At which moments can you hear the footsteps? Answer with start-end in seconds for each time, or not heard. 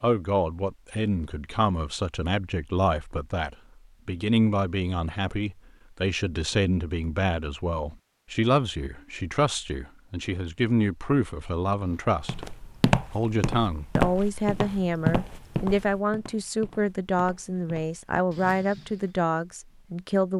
11.9-19.1.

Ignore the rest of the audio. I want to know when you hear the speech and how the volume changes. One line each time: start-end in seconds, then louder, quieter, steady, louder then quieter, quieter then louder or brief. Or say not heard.
0.0-20.3 steady.